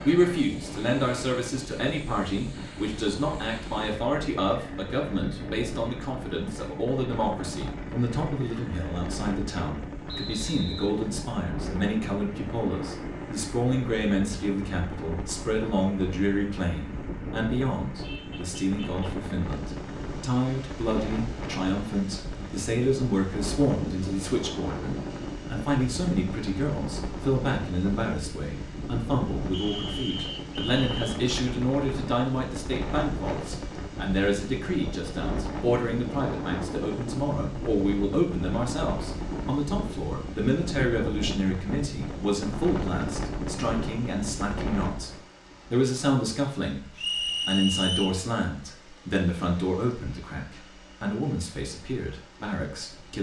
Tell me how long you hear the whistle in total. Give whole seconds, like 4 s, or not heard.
4 s.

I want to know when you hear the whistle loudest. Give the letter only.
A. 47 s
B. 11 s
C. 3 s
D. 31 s
A.